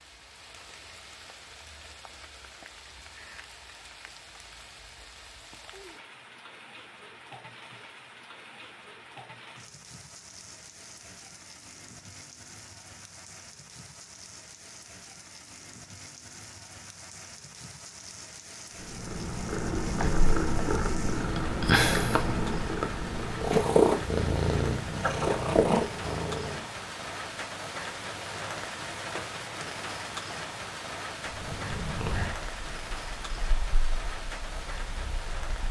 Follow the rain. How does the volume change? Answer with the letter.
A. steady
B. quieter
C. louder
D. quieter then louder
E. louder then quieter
C.